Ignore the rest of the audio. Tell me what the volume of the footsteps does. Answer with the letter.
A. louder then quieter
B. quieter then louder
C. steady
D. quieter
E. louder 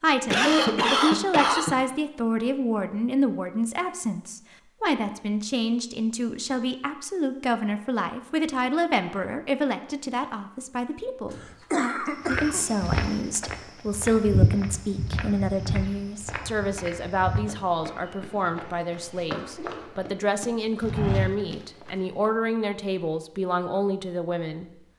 B.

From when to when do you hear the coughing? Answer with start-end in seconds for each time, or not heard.
0.2-1.8, 11.3-12.7, 19.6-20.0.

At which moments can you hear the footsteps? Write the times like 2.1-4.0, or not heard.
12.2-22.3.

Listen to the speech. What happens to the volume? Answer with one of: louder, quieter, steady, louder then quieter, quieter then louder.
steady.